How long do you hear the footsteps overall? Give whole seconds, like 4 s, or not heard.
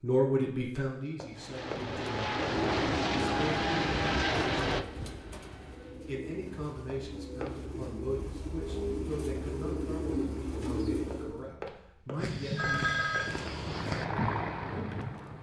3 s.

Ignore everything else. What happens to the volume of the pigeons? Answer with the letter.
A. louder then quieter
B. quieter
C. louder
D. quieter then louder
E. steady
C.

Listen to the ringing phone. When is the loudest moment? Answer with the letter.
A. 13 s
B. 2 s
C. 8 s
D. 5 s
A.